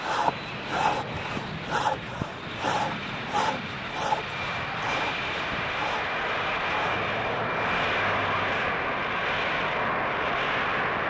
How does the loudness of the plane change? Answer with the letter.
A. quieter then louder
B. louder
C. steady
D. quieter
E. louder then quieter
B.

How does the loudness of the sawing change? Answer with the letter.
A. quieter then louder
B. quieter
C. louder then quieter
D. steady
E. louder
B.